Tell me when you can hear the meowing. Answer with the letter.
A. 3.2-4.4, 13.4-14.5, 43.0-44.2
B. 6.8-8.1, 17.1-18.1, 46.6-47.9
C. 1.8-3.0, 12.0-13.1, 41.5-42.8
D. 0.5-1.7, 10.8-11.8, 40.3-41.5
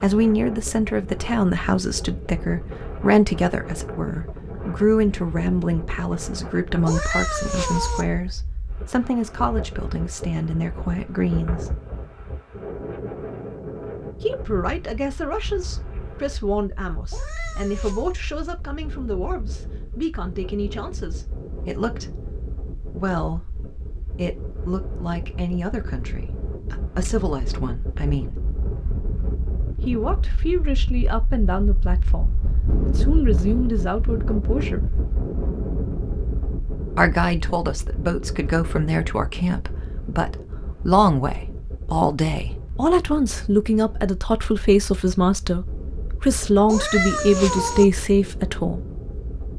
B.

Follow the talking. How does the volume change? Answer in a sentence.
The loudness of the talking goes down, then up.